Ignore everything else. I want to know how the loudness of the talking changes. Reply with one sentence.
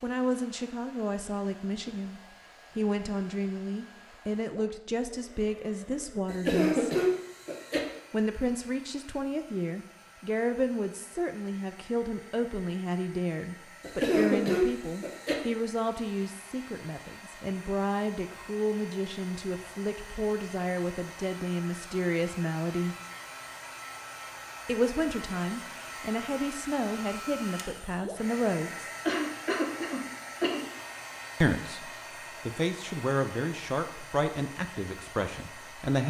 The loudness of the talking stays about the same.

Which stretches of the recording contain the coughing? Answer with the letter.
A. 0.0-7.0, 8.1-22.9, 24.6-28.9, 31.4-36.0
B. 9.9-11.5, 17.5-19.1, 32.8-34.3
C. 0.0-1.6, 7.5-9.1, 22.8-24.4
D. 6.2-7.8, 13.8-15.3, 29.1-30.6
D.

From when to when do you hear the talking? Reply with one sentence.
You can hear the talking from 0.0 to 7.0 s, from 8.1 to 22.9 s, from 24.6 to 28.9 s and from 31.4 to 36.0 s.